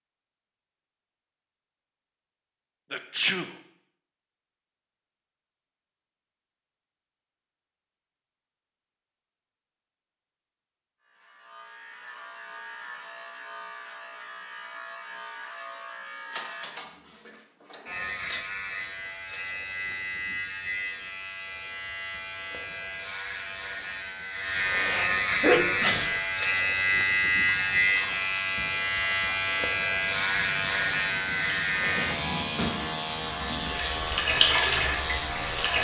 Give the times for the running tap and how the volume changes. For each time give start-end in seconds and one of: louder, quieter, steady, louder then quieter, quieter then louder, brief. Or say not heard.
27.4-35.7 louder.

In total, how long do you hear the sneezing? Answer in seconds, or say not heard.
2 s.